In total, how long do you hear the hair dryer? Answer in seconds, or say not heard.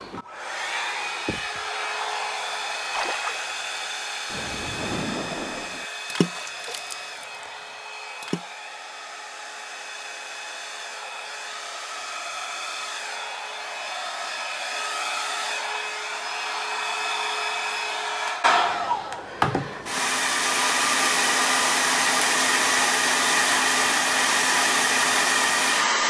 26 s.